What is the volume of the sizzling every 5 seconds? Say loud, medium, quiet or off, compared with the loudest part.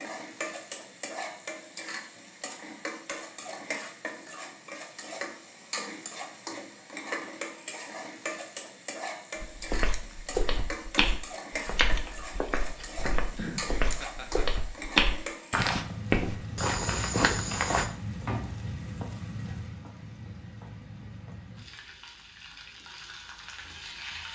loud, loud, loud, loud, medium.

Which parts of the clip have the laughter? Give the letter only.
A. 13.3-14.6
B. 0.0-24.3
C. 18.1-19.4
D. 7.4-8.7
A.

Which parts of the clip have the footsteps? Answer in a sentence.
You can hear the footsteps from 9.4 to 17.9 s.